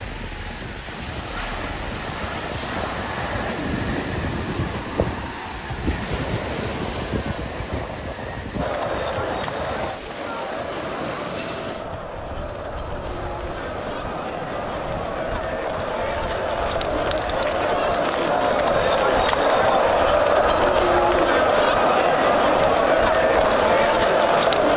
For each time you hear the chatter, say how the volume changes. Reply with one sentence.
The chatter can be heard from 8.6 to 24.7 s, getting louder.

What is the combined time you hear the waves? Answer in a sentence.
You can hear the waves for 25 seconds altogether.